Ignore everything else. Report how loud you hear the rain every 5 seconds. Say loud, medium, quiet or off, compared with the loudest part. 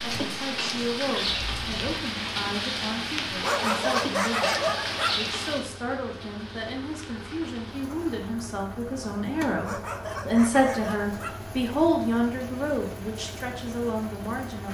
loud, medium, quiet.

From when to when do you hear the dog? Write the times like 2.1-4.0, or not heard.
3.4-5.2, 9.6-11.4.